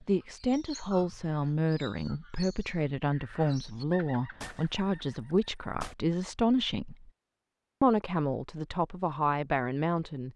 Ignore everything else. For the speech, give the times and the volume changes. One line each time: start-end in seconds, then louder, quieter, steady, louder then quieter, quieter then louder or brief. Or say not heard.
0.1-7.1 steady
7.8-10.3 brief.